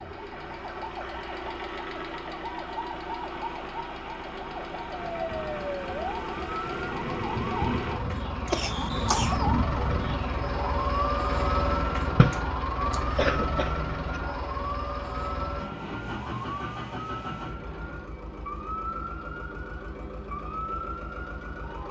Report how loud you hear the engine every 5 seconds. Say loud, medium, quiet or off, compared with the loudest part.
medium, loud, loud, medium, medium.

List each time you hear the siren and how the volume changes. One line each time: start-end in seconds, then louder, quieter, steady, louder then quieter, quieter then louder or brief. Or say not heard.
0.0-21.8 louder then quieter.